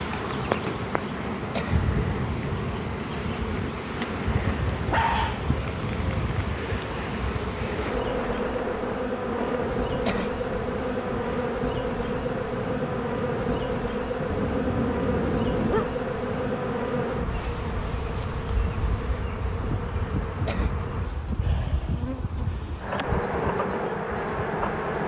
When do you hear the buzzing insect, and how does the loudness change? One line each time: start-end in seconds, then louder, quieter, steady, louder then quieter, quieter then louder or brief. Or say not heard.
0.0-25.0 steady.